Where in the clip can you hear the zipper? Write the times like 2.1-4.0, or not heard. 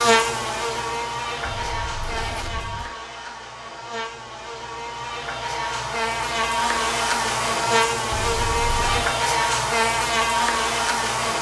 1.4-2.9, 8.1-9.2.